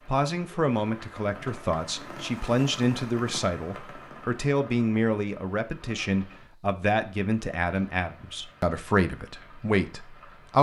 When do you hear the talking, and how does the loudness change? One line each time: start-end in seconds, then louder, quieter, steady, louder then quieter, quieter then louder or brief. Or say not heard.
0.1-10.5 steady.